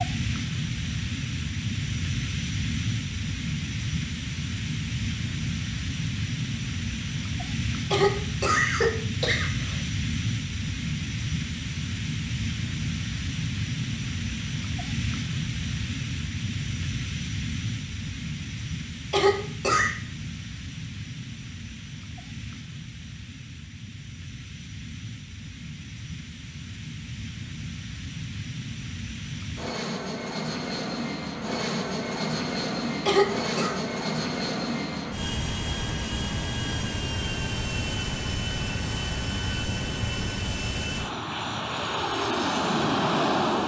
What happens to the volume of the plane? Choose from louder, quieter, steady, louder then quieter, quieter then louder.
quieter then louder.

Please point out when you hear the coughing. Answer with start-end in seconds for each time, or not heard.
7.9-9.8, 19.1-19.9, 33.0-33.8.